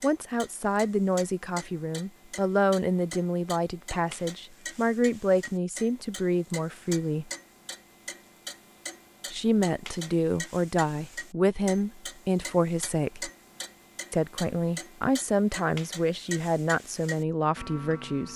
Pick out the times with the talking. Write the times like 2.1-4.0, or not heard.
0.0-7.3, 9.3-13.3, 14.1-18.3.